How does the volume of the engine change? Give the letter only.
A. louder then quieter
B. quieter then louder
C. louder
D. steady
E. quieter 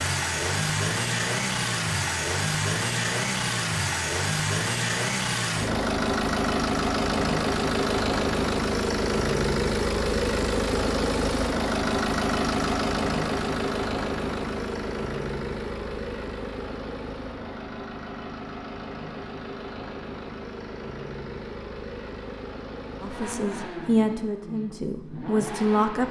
E.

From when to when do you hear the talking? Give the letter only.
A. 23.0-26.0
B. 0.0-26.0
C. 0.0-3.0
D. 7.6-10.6
A.